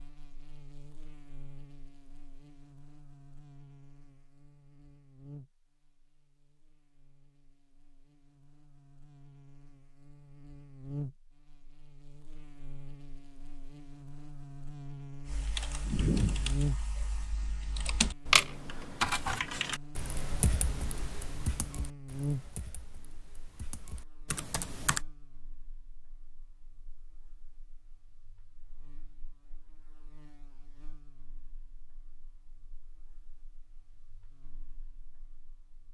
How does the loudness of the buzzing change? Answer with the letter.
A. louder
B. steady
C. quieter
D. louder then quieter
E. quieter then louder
D.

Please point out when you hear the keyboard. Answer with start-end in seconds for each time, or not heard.
15.2-25.0.